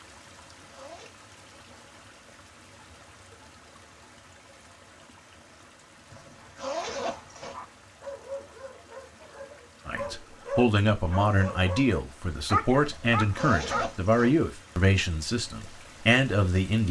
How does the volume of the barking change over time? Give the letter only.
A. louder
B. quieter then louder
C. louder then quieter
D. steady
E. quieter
B.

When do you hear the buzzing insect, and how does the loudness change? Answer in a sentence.
You can't hear the buzzing insect here.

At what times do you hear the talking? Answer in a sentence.
The talking can be heard from 9.8 to 16.8 s.